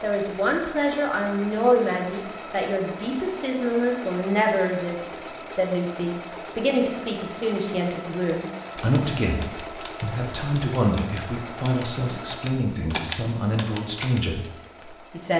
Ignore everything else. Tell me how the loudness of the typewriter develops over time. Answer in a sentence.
The loudness of the typewriter goes up.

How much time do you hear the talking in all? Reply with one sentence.
The talking can be heard for 15 seconds in total.